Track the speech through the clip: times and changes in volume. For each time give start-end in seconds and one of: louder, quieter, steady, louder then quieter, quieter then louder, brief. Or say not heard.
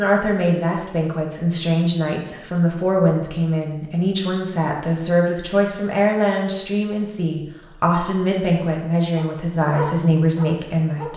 0.0-11.1 steady.